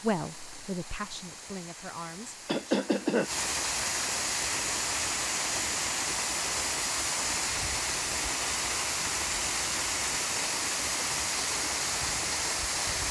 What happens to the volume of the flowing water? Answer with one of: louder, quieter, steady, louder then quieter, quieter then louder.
louder.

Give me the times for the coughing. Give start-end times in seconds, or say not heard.
2.5-3.3.